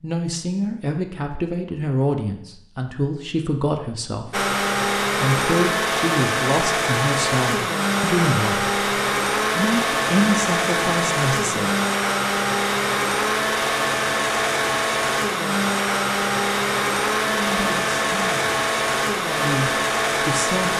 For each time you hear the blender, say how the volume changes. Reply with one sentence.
You can hear the blender from 4.3 to 20.7 s, at a steady volume.